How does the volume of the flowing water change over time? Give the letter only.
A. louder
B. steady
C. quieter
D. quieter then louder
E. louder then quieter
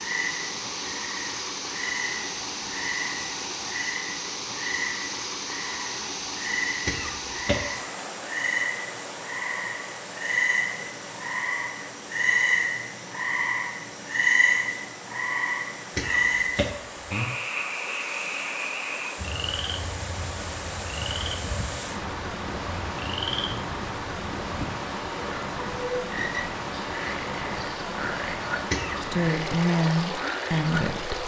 D.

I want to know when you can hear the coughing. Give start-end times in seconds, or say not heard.
6.8-7.7, 15.9-17.2, 28.7-29.1.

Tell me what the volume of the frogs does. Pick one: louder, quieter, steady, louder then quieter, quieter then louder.
louder then quieter.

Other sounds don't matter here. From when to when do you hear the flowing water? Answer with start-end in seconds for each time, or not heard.
0.0-31.2.